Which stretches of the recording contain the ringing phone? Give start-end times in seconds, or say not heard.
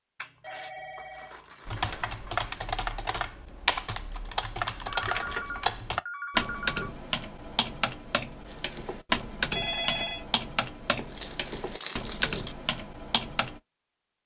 0.4-1.6, 5.0-6.9, 9.5-10.2.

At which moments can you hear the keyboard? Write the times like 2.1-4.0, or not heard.
1.6-13.6.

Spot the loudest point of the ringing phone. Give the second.
10 s.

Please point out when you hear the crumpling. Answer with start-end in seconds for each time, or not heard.
0.1-2.5, 5.0-5.7, 10.9-12.6.